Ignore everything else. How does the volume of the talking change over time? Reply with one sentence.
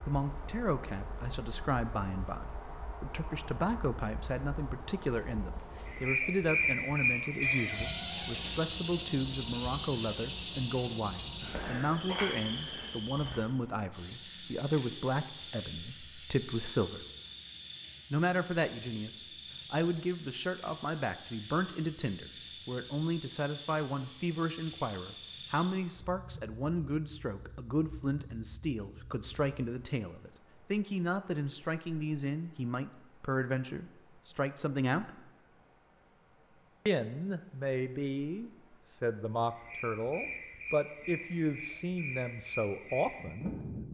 The loudness of the talking stays about the same.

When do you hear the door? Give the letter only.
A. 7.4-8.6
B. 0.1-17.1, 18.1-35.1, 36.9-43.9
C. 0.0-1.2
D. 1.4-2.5
A.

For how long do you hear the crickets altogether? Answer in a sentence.
The crickets can be heard for 44 seconds in total.